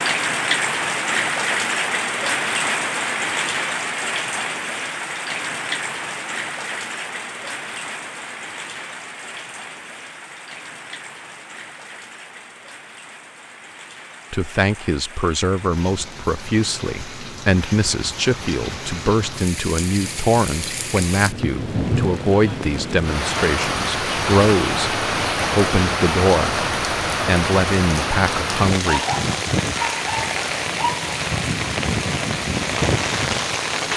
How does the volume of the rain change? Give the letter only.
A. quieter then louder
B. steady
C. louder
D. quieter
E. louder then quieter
A.